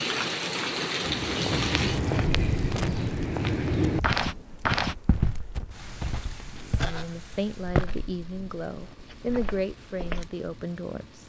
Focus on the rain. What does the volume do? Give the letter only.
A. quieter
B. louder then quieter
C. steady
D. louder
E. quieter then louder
A.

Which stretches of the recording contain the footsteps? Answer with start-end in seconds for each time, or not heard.
1.0-10.4.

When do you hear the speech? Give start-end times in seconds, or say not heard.
6.7-11.2.